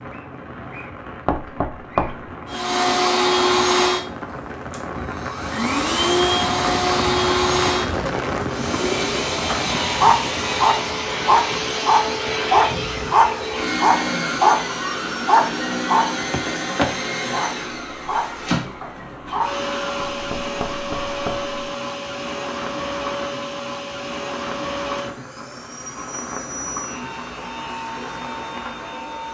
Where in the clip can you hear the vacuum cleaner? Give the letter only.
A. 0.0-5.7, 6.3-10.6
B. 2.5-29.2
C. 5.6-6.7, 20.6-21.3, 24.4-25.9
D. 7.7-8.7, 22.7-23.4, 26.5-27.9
B.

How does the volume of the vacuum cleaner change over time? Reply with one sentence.
The loudness of the vacuum cleaner goes down.